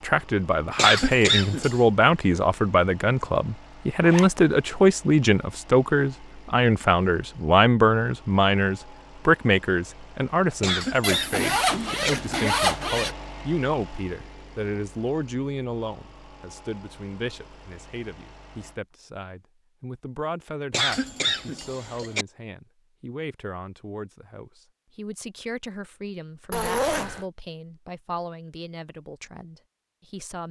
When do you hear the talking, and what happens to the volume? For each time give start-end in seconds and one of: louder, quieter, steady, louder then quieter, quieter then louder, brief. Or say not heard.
0.0-30.4 quieter.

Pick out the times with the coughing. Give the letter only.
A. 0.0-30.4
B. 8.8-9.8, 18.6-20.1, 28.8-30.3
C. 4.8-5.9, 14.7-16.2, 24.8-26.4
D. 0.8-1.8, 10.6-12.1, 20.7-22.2
D.